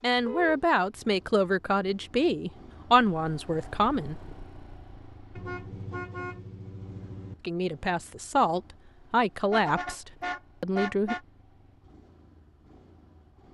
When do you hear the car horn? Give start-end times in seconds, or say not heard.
0.1-0.7, 5.3-7.3, 9.4-11.2.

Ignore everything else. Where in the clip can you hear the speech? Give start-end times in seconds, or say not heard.
0.0-4.2, 7.4-11.2.